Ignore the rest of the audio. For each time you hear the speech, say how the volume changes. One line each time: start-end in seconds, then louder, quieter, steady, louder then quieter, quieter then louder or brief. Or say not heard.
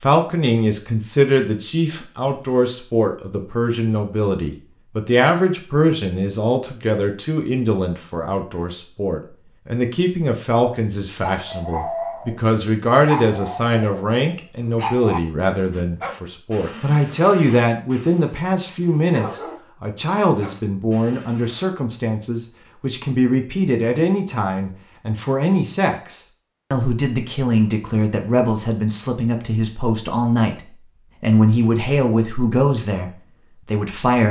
0.0-34.2 steady.